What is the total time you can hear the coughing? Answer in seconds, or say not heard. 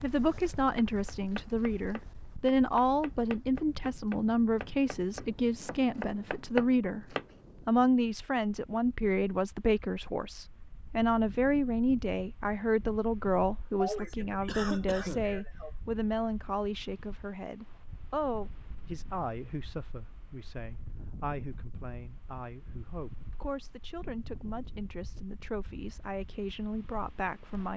2 s.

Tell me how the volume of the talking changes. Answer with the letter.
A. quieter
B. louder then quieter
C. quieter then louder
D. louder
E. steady
A.